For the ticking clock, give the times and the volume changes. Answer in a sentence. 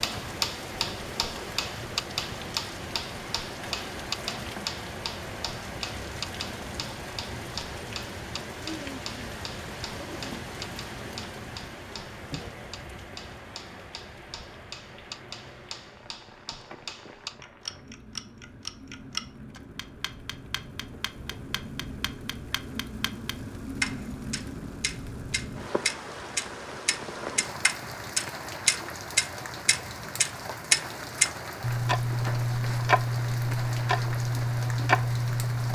The ticking clock can be heard from 0.0 to 35.7 s, getting quieter then louder.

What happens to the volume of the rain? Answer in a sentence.
The loudness of the rain goes down, then up.